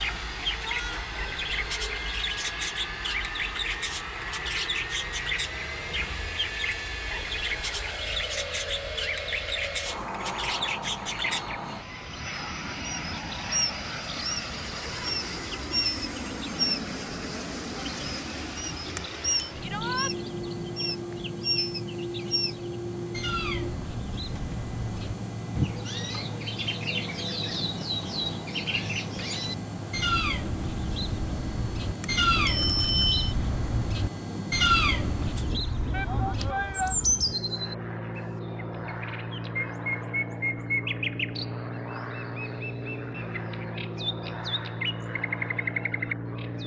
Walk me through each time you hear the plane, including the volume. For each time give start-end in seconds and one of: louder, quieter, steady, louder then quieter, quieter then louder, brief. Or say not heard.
0.0-46.6 steady.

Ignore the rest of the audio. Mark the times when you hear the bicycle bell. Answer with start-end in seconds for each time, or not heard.
18.9-19.5, 31.9-33.4.